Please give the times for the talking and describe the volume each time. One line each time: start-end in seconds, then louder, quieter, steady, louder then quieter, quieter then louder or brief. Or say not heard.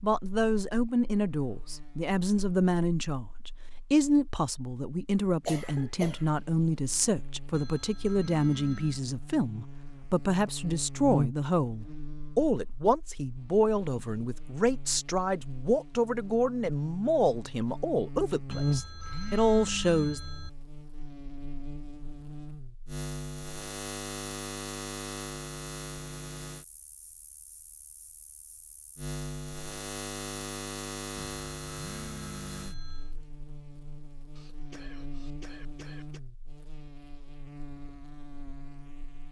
0.0-20.2 steady.